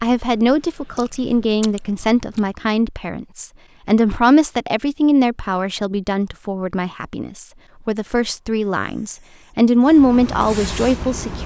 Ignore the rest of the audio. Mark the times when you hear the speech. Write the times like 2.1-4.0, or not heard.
0.0-11.4.